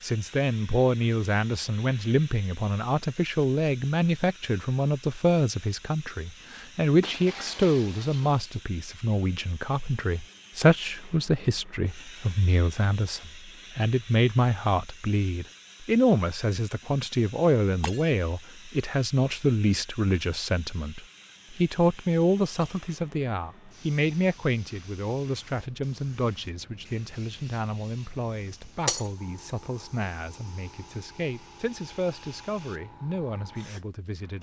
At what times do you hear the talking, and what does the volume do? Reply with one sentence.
You can hear the talking from 0.0 to 34.3 s, getting quieter.